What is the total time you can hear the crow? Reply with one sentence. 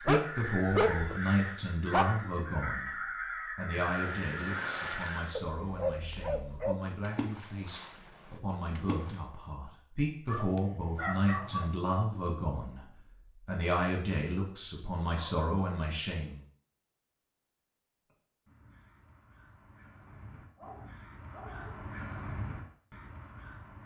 The crow can be heard for 11 seconds in total.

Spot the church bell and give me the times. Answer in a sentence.
You can't hear the church bell here.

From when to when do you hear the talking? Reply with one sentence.
The talking can be heard from 0.0 to 3.0 s, from 3.5 to 12.8 s and from 13.4 to 16.4 s.